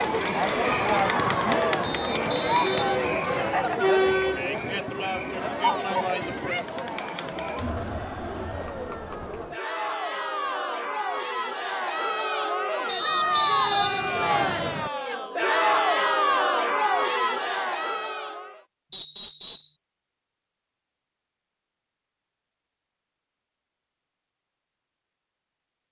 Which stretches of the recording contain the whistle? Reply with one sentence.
You can hear the whistle from 1.8 to 3.7 s, from 12.8 to 14.9 s and from 18.9 to 19.8 s.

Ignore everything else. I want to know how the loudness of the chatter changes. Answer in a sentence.
The volume of the chatter goes down, then up.